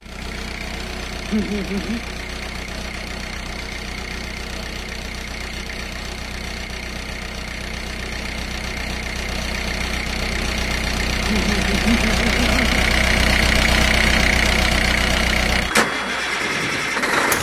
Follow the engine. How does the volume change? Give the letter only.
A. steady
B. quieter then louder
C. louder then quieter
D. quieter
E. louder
E.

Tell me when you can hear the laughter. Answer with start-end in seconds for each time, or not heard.
1.3-2.0, 11.2-12.8.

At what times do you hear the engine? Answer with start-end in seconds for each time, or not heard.
0.0-17.3.